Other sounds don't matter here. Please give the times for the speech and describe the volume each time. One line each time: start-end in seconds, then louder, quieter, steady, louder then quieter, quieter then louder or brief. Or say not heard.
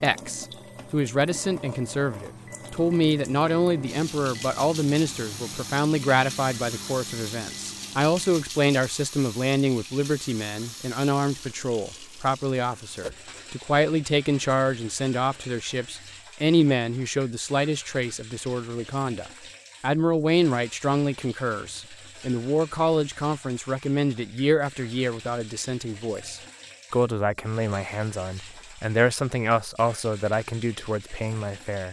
0.0-31.8 steady.